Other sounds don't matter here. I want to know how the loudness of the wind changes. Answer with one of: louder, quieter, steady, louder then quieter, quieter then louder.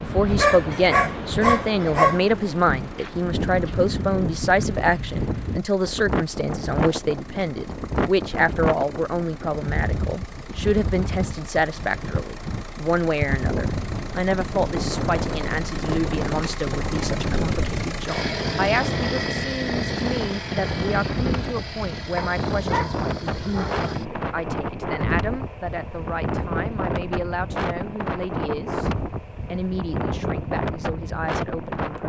steady.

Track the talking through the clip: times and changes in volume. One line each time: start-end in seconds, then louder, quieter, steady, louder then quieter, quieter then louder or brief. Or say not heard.
0.0-32.0 quieter.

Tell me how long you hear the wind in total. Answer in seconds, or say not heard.
32 s.